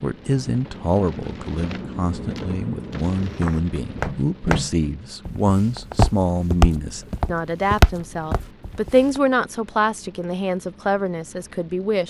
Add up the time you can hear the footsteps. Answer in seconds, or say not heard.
6 s.